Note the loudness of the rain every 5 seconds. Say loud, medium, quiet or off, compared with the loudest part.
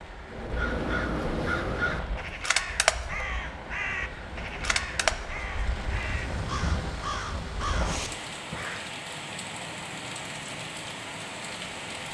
medium, loud, loud.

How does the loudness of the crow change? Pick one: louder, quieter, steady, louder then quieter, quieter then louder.
quieter.